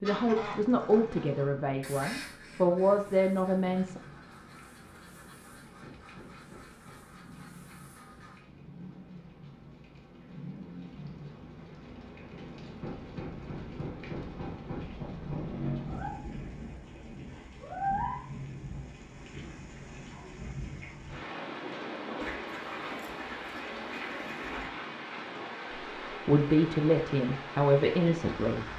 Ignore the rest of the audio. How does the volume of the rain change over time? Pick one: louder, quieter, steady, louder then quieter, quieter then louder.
louder.